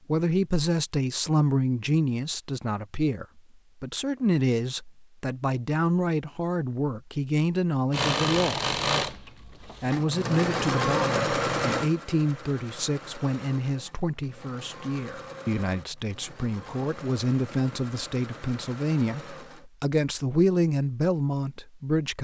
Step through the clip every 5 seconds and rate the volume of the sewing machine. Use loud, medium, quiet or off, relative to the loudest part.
off, loud, loud, quiet, off.